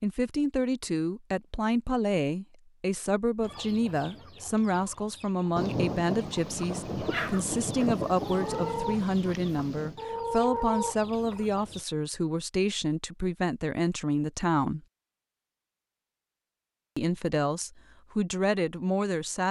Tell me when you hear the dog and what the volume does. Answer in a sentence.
You can't hear the dog here.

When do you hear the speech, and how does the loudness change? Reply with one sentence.
You can hear the speech from 0.0 to 14.8 s, at a steady volume; and briefly from 16.9 to 19.4 s.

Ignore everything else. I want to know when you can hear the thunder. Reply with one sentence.
You can hear the thunder from 5.5 to 10.0 s.